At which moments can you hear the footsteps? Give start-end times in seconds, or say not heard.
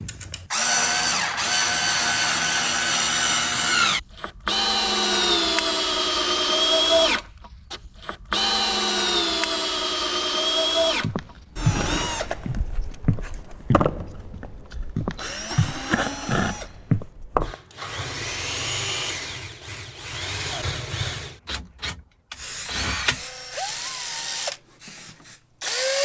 11.0-17.1.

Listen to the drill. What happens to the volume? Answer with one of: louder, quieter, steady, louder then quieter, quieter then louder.
quieter.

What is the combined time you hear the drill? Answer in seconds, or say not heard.
26 s.